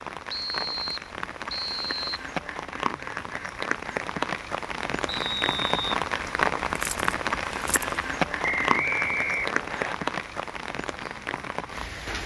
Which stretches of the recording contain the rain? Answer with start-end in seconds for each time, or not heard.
0.0-12.2.